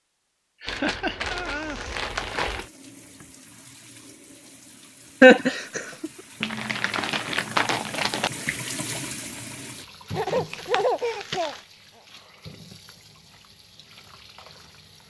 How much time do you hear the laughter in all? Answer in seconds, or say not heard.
4 s.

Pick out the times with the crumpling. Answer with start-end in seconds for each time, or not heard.
0.7-2.7, 6.4-8.3, 10.2-11.7.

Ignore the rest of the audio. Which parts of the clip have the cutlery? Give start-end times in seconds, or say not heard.
not heard.